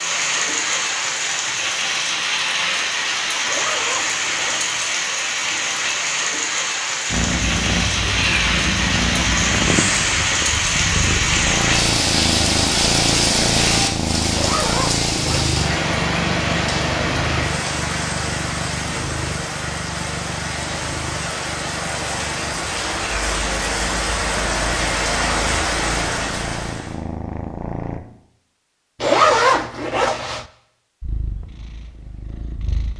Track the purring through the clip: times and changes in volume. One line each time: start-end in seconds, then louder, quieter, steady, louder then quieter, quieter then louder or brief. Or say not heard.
7.0-28.0 quieter
31.0-32.9 brief.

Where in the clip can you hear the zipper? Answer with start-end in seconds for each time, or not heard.
3.5-4.8, 14.3-15.6, 29.0-30.4.